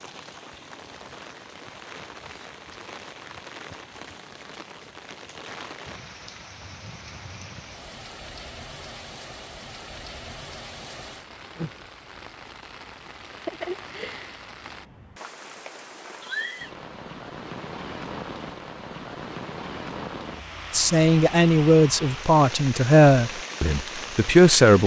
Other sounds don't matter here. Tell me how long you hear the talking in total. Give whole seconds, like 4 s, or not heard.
4 s.